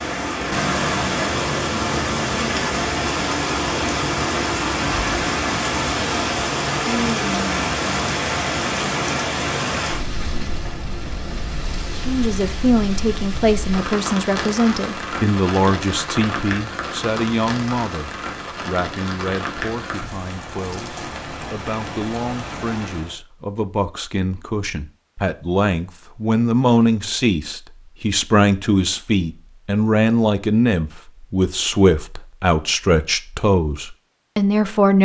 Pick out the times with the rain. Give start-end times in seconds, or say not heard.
0.0-23.1.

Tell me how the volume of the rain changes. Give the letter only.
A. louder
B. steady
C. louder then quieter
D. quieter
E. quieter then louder
D.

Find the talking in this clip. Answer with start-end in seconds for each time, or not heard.
11.9-34.9.